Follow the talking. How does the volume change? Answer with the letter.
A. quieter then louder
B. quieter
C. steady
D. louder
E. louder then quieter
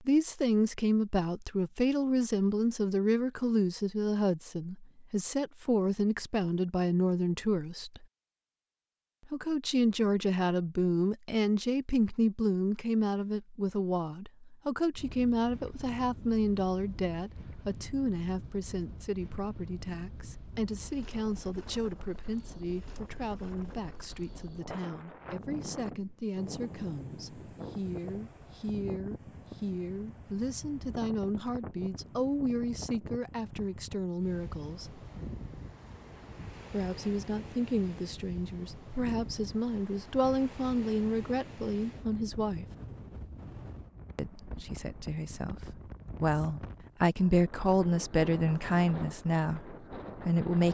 A.